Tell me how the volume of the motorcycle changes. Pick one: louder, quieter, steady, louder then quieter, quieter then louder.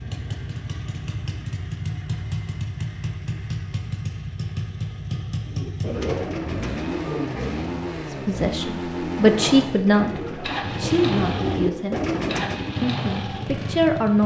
steady.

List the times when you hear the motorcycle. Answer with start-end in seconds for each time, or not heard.
0.0-14.2.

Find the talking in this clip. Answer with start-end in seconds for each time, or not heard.
8.1-12.0, 12.8-14.2.